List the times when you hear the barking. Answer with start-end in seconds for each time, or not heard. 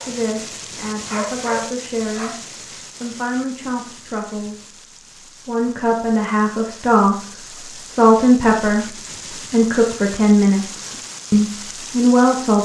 0.0-2.6.